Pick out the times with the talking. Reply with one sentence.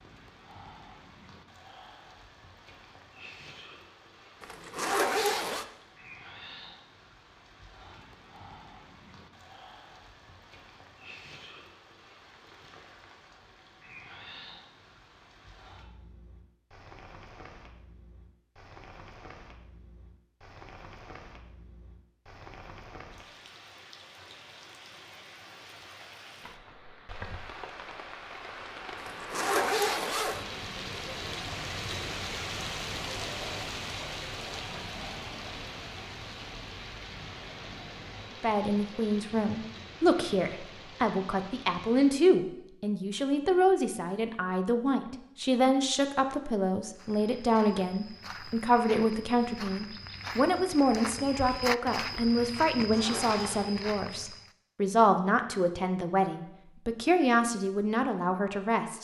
The talking can be heard from 38.4 to 59.0 s.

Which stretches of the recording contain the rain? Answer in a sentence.
You can hear the rain from 0.0 to 42.3 s.